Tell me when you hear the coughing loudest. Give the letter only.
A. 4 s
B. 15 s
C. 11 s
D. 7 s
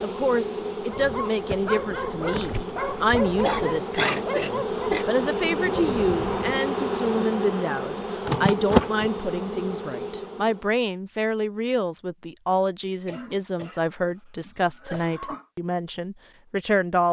A.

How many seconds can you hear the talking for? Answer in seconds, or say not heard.
17 s.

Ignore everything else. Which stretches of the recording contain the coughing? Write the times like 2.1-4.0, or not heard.
3.4-5.0, 13.1-15.4.